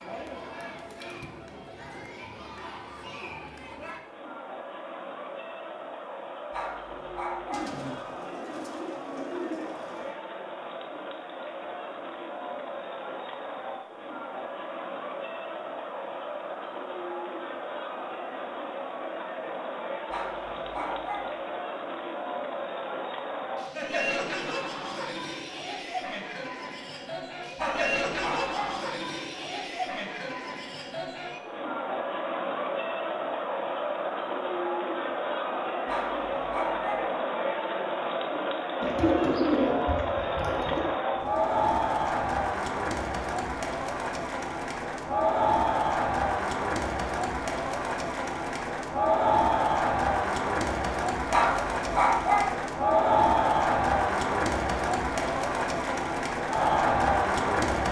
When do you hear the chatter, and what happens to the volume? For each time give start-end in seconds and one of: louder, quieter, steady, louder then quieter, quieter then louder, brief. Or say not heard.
0.0-57.8 louder.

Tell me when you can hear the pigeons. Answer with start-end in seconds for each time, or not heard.
7.5-10.2, 38.8-40.9.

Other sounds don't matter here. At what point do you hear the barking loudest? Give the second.
52 s.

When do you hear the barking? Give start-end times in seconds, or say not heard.
6.5-7.8, 20.1-21.4, 27.6-28.9, 35.9-37.1, 51.3-52.6.